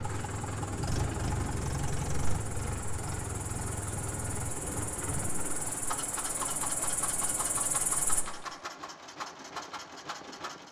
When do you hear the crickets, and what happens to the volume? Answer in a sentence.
You can hear the crickets from 0.0 to 8.2 s, getting louder.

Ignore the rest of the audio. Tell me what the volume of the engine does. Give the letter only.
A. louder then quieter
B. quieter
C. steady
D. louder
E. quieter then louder
B.